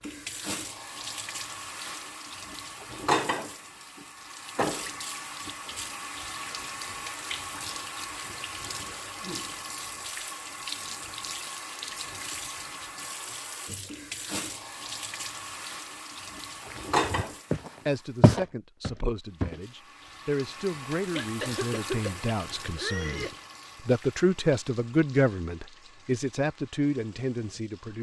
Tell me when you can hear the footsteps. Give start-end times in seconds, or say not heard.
16.6-19.6.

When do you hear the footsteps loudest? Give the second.
18 s.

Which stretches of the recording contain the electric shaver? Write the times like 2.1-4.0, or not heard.
not heard.